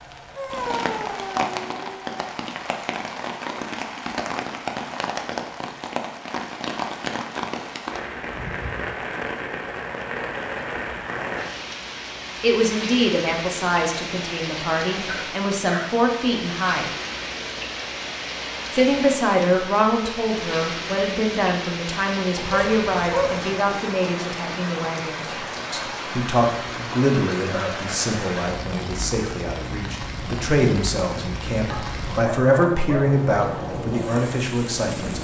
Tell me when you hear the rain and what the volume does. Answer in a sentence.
You can hear the rain from 0.0 to 35.1 s, at a steady volume.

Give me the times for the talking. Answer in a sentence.
You can hear the talking from 12.4 to 16.9 s and from 18.7 to 35.1 s.